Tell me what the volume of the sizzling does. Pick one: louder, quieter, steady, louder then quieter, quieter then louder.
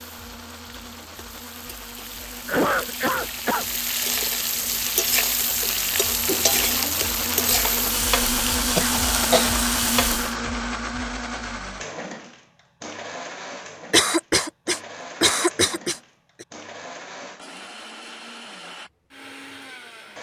louder.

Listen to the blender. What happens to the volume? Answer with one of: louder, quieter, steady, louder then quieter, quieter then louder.
louder then quieter.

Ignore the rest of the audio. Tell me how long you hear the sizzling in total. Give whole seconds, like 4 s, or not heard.
10 s.